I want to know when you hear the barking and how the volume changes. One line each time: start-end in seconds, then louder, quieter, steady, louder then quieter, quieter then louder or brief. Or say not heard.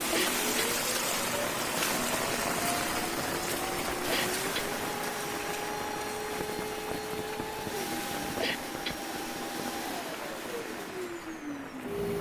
not heard.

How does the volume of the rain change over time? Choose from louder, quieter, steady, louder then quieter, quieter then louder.
quieter.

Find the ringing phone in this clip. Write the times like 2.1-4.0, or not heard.
not heard.